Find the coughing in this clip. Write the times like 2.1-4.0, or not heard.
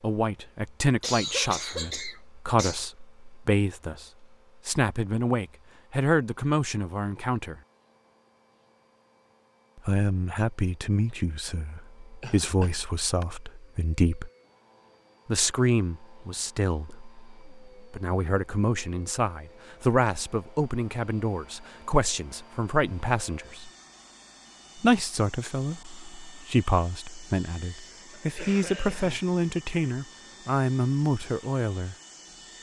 1.0-2.9, 12.2-13.2, 28.1-29.2.